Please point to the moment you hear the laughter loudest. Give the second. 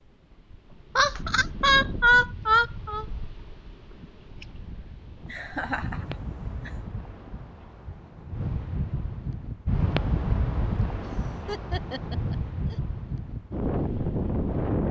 2 s.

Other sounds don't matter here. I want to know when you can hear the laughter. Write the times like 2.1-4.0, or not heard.
0.9-3.0, 5.2-6.8, 11.1-12.8.